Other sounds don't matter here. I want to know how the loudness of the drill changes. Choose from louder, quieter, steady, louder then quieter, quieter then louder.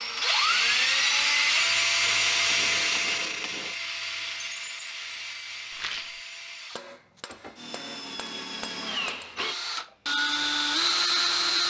quieter then louder.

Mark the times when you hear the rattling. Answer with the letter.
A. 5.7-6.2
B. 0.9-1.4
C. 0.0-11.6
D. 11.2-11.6
A.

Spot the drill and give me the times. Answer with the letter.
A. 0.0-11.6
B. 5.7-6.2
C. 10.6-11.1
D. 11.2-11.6
A.